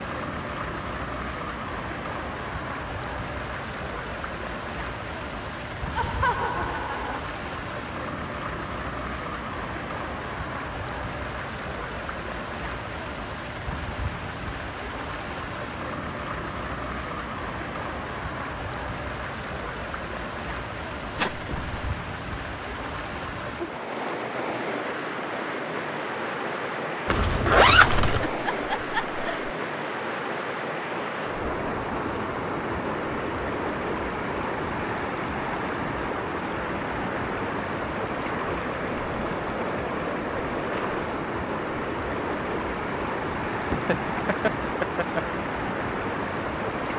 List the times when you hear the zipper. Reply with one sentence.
The zipper can be heard from 21.1 to 21.8 s and from 27.1 to 28.3 s.